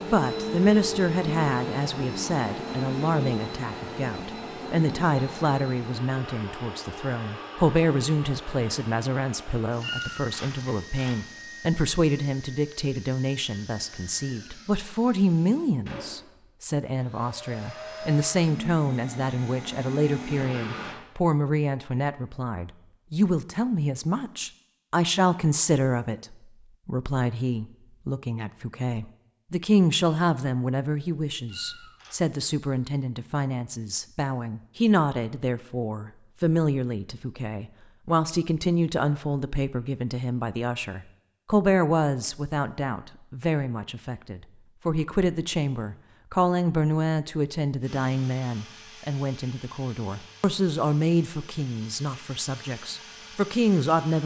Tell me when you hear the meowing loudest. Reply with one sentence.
The volume of the meowing peaks at 10 seconds.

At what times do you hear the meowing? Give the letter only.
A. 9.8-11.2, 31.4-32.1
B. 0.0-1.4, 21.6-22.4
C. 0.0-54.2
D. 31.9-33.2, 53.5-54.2
A.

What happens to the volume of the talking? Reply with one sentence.
The volume of the talking stays about the same.